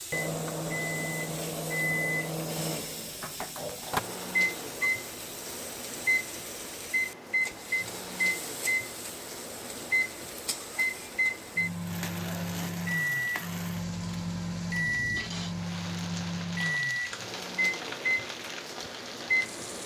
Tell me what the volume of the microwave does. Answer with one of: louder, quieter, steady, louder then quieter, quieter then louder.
steady.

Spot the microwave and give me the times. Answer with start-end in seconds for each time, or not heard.
0.1-19.8.